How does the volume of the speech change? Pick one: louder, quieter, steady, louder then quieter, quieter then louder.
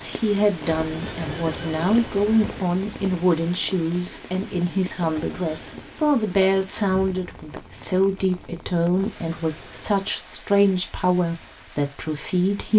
steady.